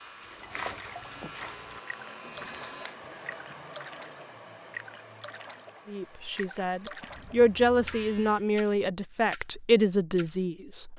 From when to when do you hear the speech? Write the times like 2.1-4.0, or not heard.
5.8-10.9.